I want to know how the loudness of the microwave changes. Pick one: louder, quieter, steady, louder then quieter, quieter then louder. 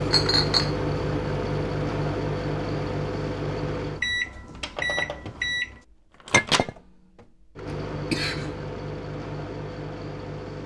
quieter.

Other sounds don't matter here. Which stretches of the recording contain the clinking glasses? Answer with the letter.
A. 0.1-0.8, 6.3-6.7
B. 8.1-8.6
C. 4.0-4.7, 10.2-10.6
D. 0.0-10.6
A.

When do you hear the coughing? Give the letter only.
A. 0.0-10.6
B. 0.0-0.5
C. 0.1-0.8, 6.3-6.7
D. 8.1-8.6
D.